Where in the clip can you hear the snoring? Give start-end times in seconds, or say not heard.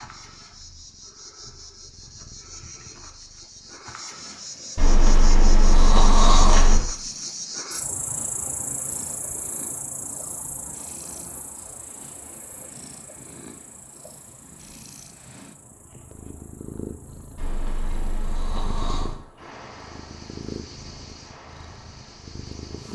4.8-6.8, 17.4-19.1.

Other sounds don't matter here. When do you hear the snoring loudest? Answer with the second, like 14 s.
6 s.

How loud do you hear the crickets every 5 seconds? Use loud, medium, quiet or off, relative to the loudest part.
medium, loud, medium, quiet, quiet.